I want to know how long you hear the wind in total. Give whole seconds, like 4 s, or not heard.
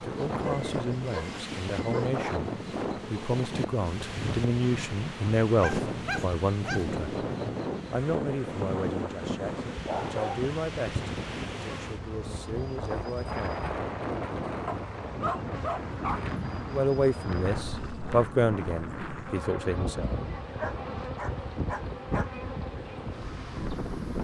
24 s.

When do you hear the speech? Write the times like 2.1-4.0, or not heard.
0.0-7.2, 7.9-13.7, 16.6-20.1.